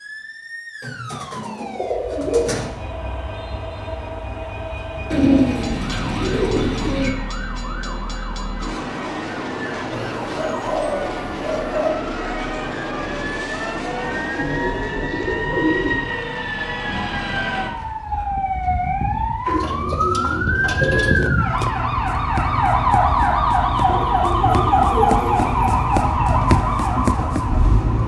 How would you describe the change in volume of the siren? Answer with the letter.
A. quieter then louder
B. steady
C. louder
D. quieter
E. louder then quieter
C.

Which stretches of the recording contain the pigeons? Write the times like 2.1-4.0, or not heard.
0.8-2.7, 5.1-7.1, 9.9-12.0, 14.3-16.0, 19.4-21.3, 23.9-25.8.